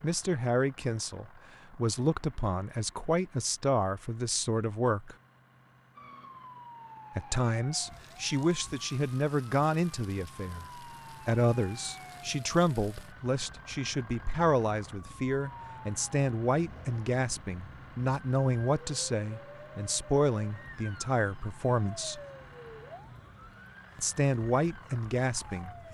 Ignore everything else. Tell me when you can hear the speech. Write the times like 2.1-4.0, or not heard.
0.0-5.2, 7.2-10.7, 11.2-22.2, 23.9-25.8.